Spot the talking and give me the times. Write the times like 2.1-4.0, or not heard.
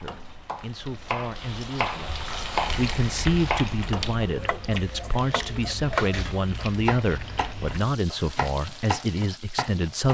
0.0-10.0.